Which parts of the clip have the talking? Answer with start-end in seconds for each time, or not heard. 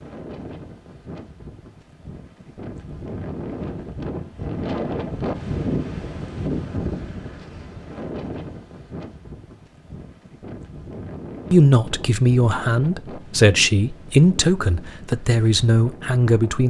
11.5-16.6.